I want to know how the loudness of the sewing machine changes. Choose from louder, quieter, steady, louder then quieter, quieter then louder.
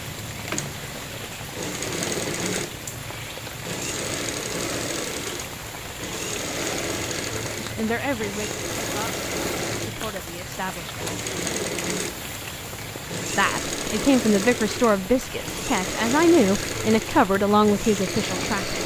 steady.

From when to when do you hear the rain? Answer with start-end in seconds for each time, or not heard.
0.0-18.8.